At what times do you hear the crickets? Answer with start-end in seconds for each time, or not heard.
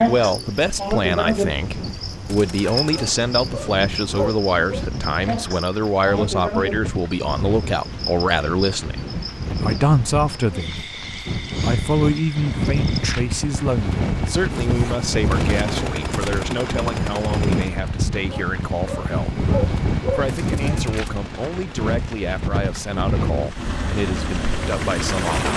0.0-13.2.